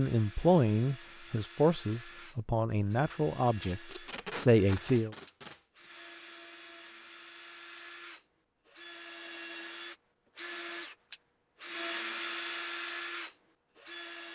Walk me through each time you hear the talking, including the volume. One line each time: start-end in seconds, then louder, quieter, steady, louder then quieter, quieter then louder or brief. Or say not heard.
0.0-5.2 quieter then louder.